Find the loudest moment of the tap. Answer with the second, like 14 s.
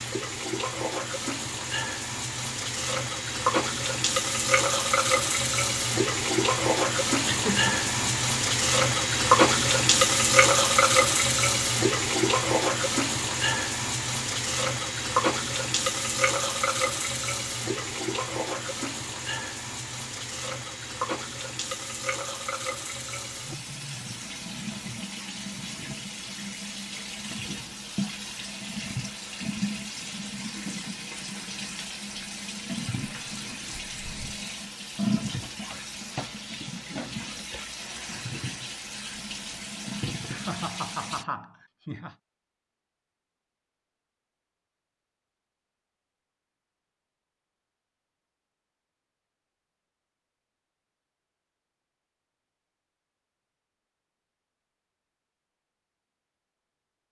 10 s.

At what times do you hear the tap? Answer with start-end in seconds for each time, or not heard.
0.0-41.2.